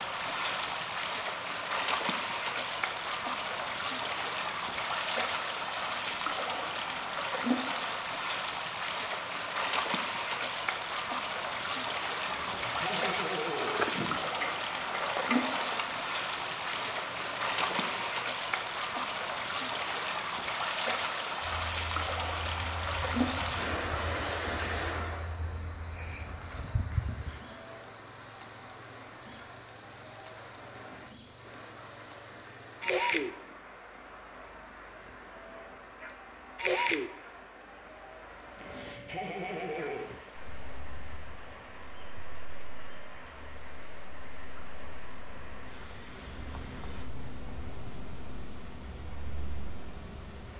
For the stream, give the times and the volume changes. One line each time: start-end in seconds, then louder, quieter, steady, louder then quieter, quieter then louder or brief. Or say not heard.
0.0-50.5 quieter.